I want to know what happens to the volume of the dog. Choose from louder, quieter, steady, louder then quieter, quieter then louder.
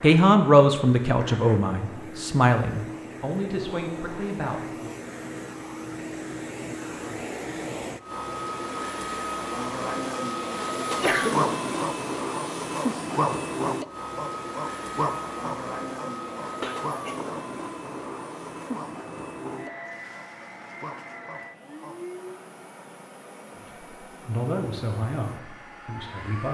quieter.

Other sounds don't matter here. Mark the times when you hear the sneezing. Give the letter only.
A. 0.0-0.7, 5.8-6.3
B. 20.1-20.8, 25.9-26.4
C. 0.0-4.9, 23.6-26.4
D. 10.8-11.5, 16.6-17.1
D.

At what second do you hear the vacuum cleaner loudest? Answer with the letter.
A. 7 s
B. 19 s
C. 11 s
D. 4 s
C.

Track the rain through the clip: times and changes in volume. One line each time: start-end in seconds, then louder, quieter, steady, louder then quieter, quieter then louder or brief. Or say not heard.
not heard.